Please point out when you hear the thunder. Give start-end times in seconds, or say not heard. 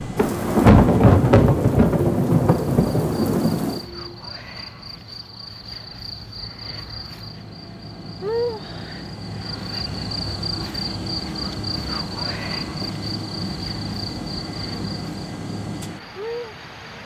0.1-3.8.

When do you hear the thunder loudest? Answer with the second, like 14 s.
1 s.